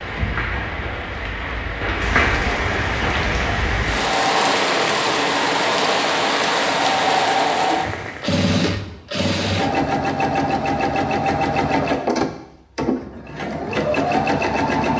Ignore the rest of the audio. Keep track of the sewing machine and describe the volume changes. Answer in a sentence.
The volume of the sewing machine stays about the same.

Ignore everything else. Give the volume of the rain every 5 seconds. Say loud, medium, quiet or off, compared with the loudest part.
loud, loud, off.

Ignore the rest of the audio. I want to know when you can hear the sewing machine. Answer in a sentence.
The sewing machine can be heard from 3.9 to 14.9 s.